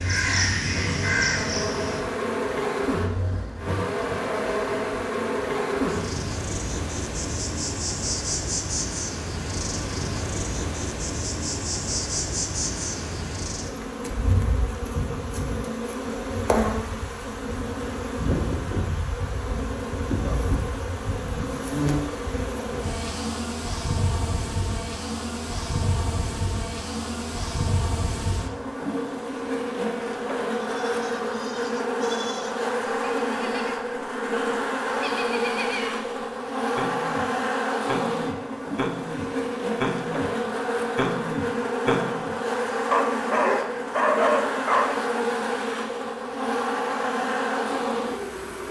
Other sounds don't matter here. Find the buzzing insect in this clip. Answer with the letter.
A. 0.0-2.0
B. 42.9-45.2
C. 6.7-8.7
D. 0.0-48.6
D.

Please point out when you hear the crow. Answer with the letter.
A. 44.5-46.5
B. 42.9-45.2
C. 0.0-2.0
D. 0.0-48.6
C.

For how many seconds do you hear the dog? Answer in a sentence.
The dog can be heard for 2 seconds in total.